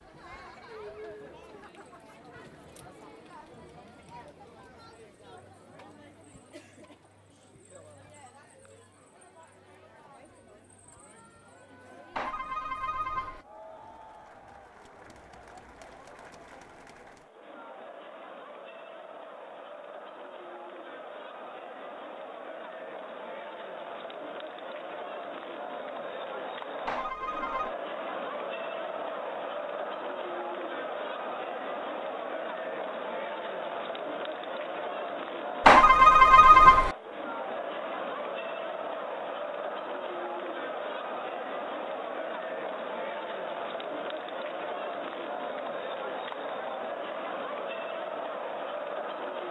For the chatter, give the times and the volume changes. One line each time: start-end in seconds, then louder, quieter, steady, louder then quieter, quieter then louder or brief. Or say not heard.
0.0-49.4 louder.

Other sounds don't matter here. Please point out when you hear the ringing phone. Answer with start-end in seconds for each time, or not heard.
12.2-13.4, 26.9-27.8, 35.6-37.0.